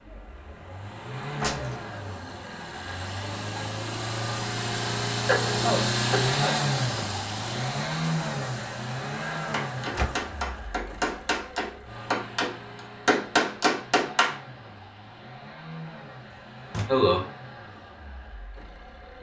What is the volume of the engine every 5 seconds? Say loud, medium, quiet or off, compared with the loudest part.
medium, loud, quiet, quiet.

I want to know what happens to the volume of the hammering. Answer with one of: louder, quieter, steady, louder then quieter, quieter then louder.
louder.